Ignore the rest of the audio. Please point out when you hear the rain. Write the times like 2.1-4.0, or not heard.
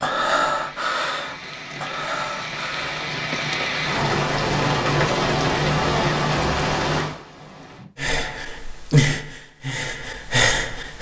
0.0-7.9.